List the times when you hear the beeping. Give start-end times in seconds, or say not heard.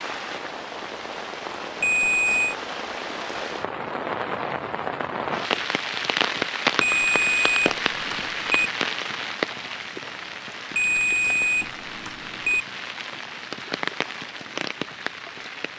1.8-2.5, 6.8-8.7, 10.8-12.7.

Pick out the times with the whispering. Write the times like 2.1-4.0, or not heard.
not heard.